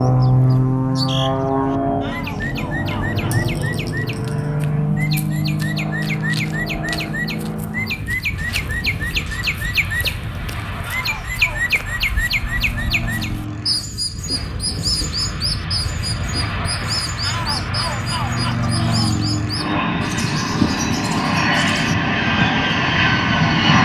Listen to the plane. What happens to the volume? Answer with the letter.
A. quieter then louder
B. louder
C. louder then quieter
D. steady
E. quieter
A.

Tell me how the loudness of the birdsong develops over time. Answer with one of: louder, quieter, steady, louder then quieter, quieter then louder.
louder then quieter.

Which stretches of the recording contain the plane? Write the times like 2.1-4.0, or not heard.
0.0-23.8.